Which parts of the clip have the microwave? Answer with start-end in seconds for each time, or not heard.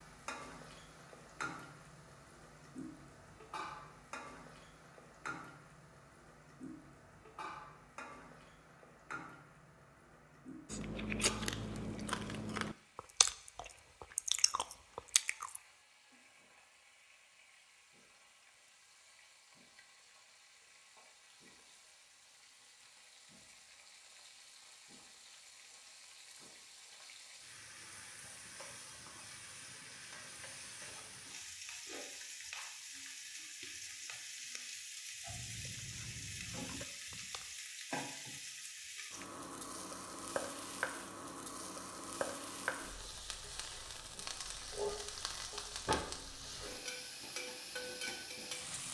not heard.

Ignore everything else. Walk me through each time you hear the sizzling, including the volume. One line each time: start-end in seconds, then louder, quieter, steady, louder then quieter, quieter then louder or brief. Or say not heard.
0.0-48.8 quieter then louder.